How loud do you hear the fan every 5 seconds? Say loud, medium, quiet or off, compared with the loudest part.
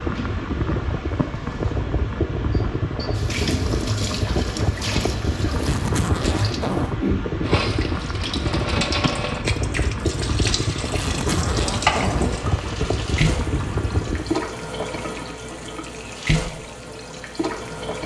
loud, loud, loud, off.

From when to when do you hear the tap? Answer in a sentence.
The tap can be heard from 0.0 to 18.0 s.